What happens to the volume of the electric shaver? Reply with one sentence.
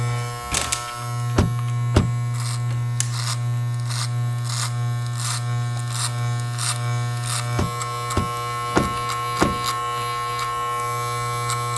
The volume of the electric shaver stays about the same.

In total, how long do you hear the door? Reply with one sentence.
You can hear the door for 3 seconds altogether.